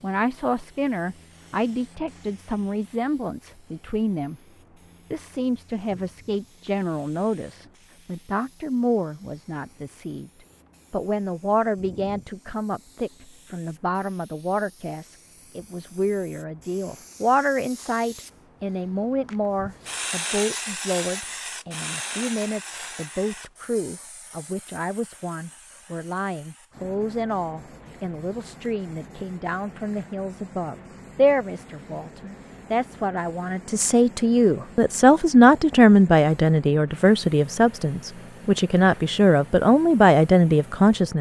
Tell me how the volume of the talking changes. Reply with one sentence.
The loudness of the talking goes up.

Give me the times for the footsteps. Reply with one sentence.
You can't hear the footsteps here.